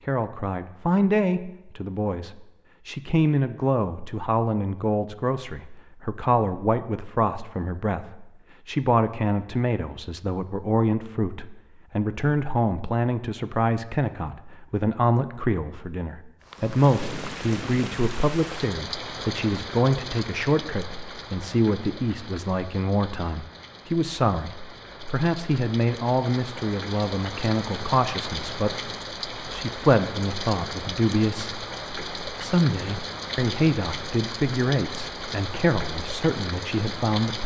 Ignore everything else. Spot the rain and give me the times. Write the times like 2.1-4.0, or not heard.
16.4-37.4.